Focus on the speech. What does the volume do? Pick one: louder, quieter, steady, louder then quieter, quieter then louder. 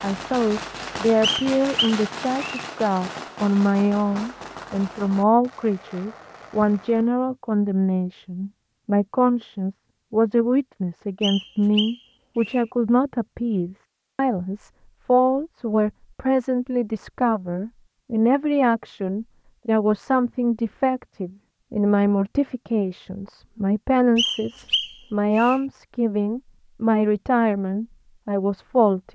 steady.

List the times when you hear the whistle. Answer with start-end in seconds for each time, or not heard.
1.2-2.6, 11.2-12.7, 24.1-25.6.